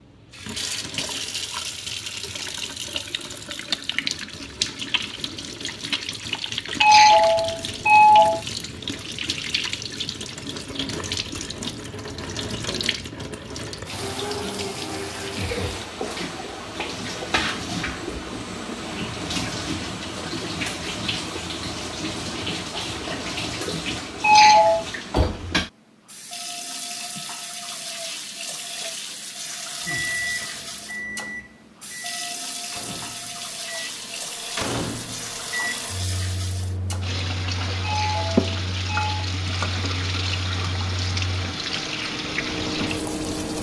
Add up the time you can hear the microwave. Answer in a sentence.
The microwave can be heard for 14 seconds in total.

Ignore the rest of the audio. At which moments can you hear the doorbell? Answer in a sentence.
You can hear the doorbell from 6.8 to 8.4 s, from 24.2 to 24.9 s and from 37.8 to 39.1 s.